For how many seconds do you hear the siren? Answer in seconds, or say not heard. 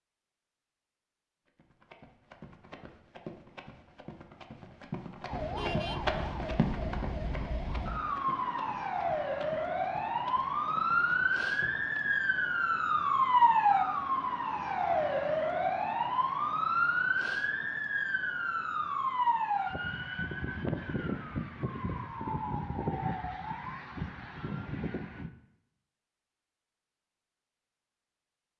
20 s.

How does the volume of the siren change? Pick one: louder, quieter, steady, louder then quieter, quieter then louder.
louder then quieter.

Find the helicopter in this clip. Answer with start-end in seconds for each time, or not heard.
not heard.